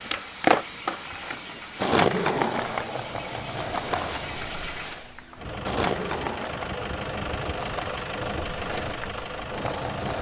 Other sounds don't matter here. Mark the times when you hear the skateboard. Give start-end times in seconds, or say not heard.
0.0-10.1.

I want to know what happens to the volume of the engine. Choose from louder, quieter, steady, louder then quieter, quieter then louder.
louder.